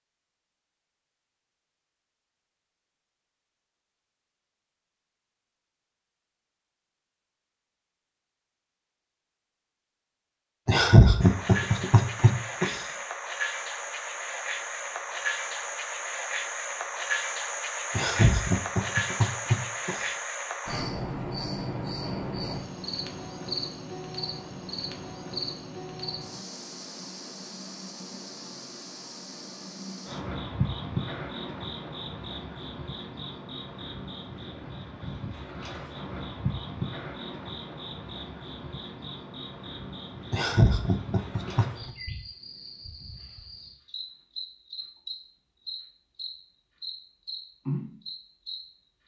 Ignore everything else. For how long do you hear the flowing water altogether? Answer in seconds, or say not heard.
not heard.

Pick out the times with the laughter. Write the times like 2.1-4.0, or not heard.
10.7-12.8, 17.9-20.1, 40.3-41.9.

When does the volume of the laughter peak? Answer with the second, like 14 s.
11 s.